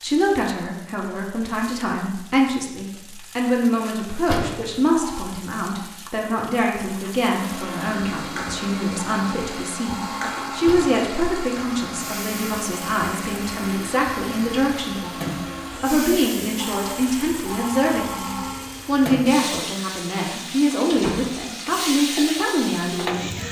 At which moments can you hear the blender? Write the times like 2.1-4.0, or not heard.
7.2-19.1.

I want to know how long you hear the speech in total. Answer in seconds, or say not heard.
23 s.